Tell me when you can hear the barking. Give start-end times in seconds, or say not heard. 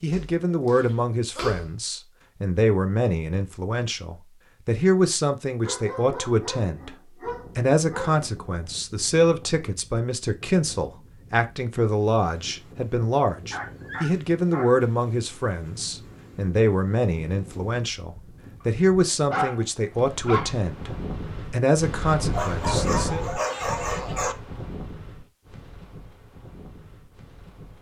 0.1-1.7, 5.6-8.2, 13.3-14.7, 19.1-20.6, 22.3-24.4.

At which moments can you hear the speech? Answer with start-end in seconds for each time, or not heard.
0.0-7.0, 7.5-23.2.